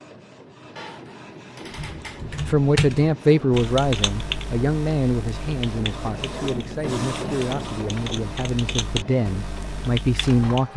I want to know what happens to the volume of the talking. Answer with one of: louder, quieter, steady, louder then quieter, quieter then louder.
quieter then louder.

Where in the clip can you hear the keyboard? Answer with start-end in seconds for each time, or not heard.
1.7-10.7.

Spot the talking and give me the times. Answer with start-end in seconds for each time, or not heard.
2.5-10.7.